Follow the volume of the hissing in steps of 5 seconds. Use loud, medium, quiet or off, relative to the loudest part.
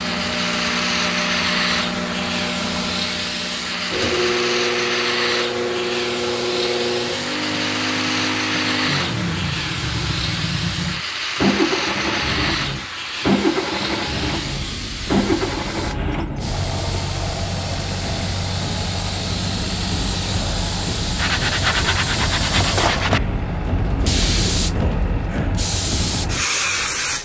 loud, loud, loud, medium, loud, loud.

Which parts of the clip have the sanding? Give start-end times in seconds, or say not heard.
21.1-23.2.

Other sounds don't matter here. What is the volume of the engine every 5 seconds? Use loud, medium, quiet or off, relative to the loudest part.
loud, loud, loud, loud, medium, medium.